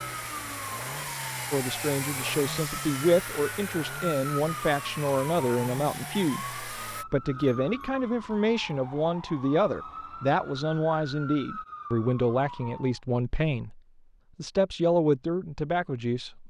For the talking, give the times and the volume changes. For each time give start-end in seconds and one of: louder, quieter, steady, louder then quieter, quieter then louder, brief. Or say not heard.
1.5-16.4 steady.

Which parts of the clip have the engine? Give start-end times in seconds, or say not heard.
0.0-7.0.